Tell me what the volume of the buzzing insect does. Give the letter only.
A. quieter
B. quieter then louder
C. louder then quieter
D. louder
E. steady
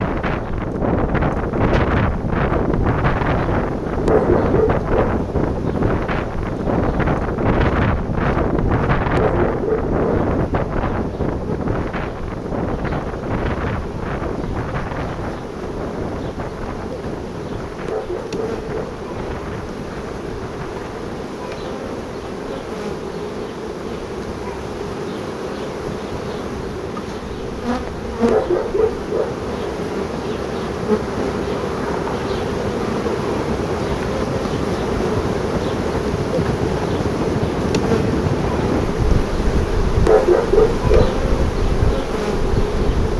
D.